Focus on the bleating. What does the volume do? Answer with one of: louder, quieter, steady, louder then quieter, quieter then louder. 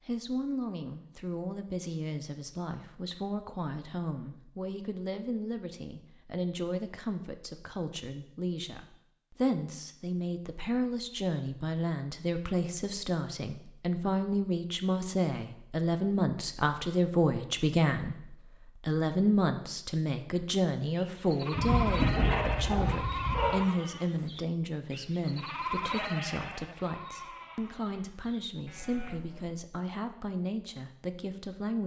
quieter.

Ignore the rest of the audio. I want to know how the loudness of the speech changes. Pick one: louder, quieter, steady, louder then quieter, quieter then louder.
louder then quieter.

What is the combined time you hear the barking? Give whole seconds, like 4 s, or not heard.
2 s.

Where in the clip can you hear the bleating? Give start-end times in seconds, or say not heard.
20.9-29.6.